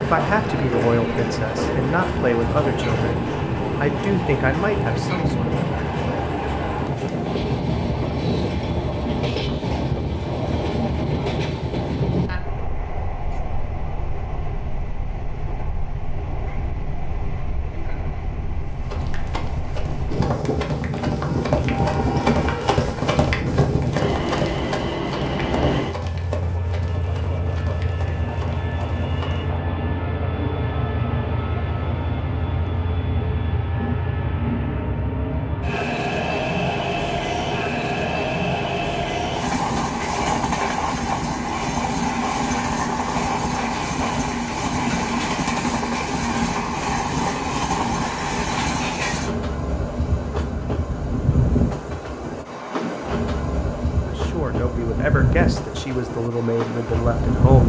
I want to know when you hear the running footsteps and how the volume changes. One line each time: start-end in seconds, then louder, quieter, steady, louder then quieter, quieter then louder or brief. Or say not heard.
18.6-29.5 louder then quieter.